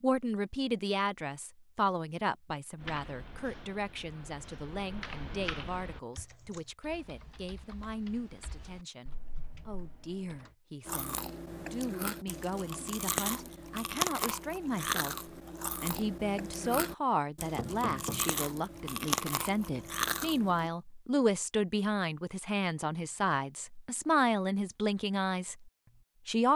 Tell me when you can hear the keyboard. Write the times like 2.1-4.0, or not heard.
2.8-10.5.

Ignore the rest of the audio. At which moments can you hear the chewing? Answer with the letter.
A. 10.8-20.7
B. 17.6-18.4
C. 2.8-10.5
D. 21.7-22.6
A.